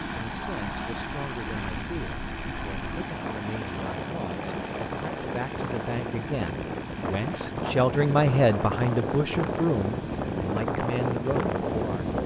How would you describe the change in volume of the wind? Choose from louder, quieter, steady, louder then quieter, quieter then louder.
louder.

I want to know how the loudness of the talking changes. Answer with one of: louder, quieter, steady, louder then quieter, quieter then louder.
louder then quieter.